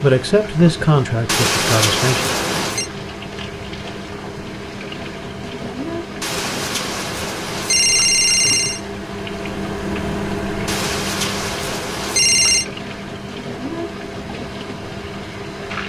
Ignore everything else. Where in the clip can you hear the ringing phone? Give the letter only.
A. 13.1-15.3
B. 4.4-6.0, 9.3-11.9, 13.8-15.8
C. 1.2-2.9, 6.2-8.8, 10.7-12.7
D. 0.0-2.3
C.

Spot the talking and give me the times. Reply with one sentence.
The talking can be heard from 0.0 to 2.3 s.